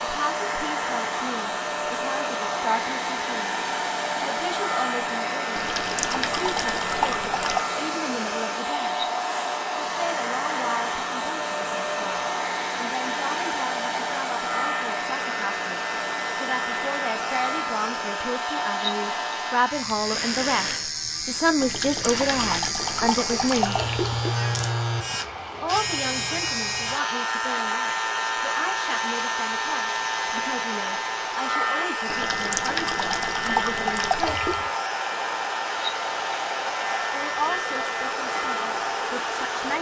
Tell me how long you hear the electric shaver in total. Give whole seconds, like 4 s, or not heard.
40 s.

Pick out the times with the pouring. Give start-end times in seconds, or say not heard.
5.5-7.7, 21.6-24.4, 32.0-34.7.